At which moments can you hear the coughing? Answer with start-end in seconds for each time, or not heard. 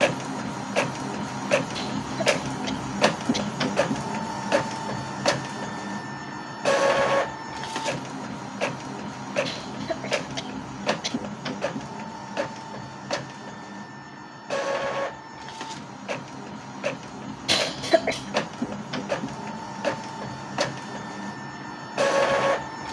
1.8-3.5, 9.4-11.2, 17.4-18.3.